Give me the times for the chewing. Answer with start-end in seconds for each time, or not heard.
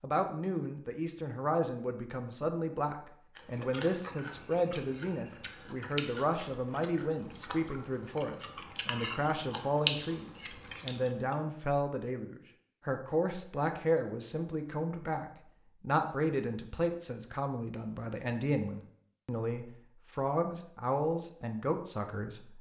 3.4-11.3.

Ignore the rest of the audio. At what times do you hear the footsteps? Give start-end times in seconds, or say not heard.
not heard.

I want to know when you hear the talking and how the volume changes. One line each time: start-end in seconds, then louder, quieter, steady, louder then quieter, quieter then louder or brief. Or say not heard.
0.0-22.5 steady.